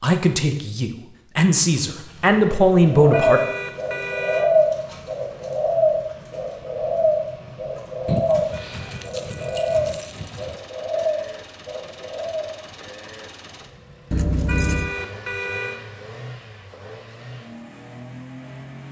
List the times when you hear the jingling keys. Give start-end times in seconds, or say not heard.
1.9-2.4, 8.1-10.6, 14.1-14.9.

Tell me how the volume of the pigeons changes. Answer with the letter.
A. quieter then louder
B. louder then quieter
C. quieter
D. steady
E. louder
C.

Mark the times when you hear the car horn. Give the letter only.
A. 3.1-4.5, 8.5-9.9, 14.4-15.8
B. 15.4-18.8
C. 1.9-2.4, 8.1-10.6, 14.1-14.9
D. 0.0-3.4
A.